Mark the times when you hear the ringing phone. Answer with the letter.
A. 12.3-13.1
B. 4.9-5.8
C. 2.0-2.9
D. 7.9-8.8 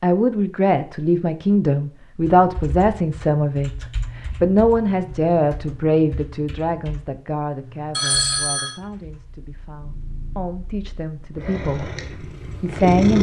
D.